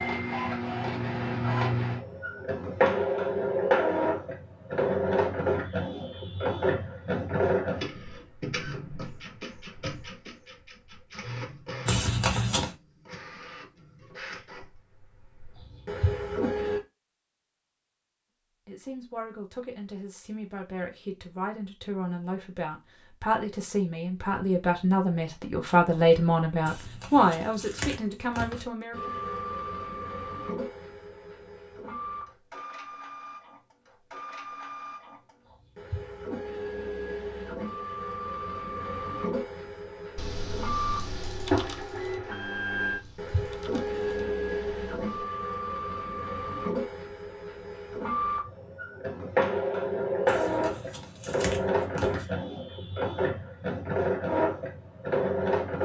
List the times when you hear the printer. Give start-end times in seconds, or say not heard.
0.0-16.8, 28.9-55.8.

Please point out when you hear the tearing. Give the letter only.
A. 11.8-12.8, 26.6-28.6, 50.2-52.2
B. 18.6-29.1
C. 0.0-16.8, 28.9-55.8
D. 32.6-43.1
A.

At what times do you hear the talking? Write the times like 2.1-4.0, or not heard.
18.6-29.1.